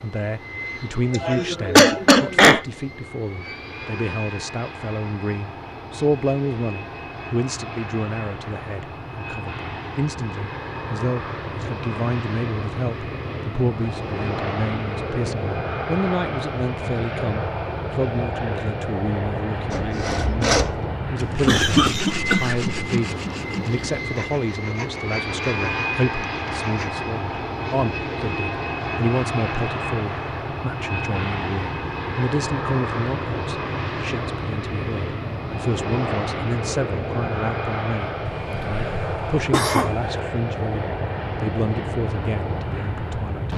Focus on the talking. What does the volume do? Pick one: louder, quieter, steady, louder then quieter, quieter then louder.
steady.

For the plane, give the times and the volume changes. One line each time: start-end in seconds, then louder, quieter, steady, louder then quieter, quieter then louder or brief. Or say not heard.
0.0-43.5 louder.